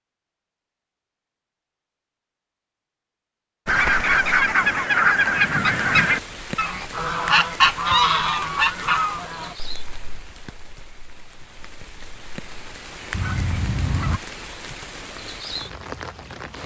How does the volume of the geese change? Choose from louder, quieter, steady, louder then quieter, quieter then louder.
quieter then louder.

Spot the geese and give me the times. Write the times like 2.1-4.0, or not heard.
3.6-14.2.